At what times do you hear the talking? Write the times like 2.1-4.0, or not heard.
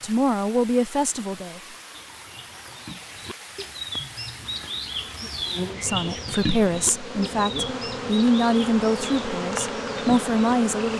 0.0-1.6, 5.8-10.9.